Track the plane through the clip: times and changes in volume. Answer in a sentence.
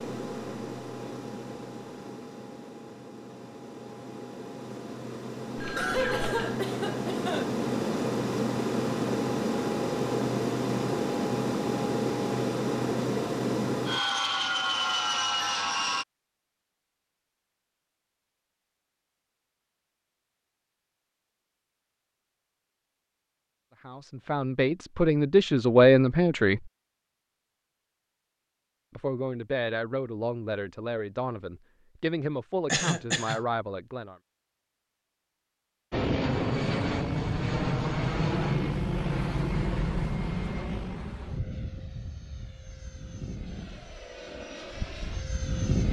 You can hear the plane from 0.0 to 16.1 s, getting louder; and from 35.9 to 45.8 s, getting quieter.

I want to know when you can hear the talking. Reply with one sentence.
You can hear the talking from 23.9 to 26.7 s and from 28.9 to 34.1 s.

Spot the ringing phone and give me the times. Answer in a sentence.
You can hear the ringing phone from 5.5 to 6.5 s.